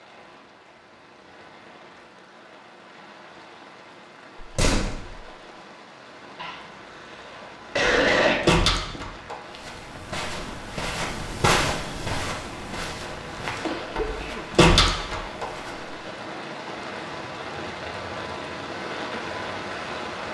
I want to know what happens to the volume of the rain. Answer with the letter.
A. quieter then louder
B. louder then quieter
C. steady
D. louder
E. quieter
D.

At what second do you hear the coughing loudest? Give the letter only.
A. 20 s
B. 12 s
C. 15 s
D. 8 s
D.